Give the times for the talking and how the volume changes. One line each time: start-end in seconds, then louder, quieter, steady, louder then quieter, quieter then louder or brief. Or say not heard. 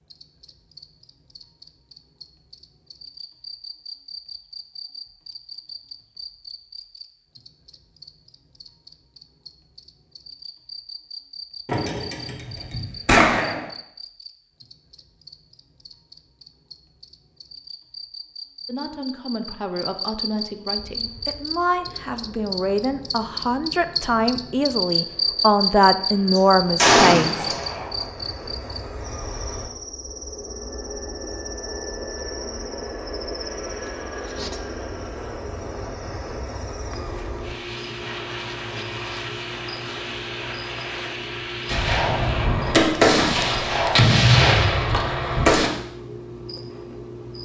18.6-27.5 louder.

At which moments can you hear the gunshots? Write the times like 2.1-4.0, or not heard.
11.7-13.6, 26.4-28.1, 41.6-45.7.